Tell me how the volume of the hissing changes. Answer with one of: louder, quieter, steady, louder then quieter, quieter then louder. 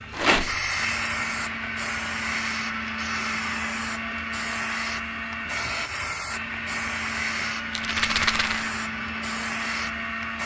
steady.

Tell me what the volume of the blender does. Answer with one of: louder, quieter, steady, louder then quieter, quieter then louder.
steady.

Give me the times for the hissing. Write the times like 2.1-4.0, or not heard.
0.0-10.4.